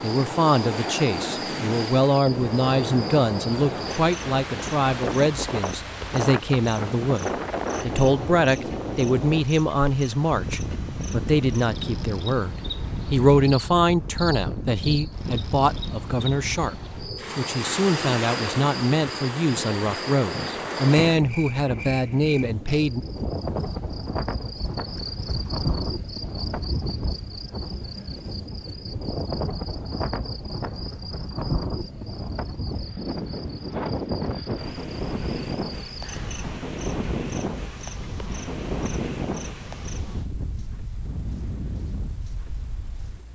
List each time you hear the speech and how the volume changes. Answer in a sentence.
You can hear the speech from 0.0 to 23.0 s, at a steady volume.